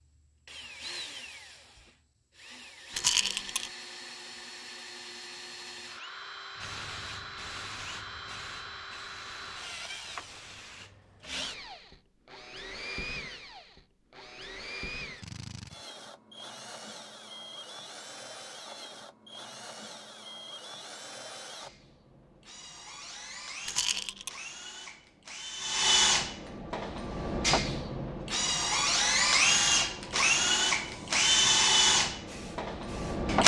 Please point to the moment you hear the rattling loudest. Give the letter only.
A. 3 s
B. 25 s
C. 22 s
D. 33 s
A.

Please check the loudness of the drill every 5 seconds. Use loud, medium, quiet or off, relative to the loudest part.
quiet, quiet, quiet, quiet, quiet, loud, loud.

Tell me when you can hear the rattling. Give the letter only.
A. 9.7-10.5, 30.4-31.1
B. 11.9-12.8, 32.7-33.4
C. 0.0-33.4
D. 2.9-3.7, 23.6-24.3
D.